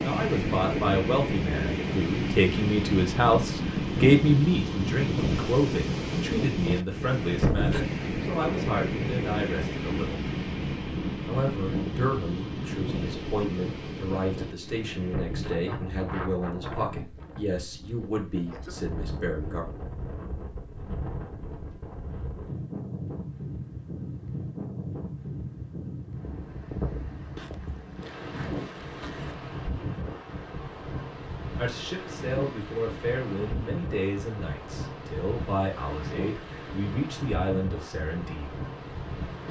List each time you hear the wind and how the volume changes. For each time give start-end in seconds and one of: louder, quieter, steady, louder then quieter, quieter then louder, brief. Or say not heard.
0.0-39.4 quieter.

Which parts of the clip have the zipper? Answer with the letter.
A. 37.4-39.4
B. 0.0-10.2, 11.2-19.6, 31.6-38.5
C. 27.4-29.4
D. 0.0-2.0
C.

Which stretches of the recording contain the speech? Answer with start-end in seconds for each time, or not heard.
0.0-10.2, 11.2-19.6, 31.6-38.5.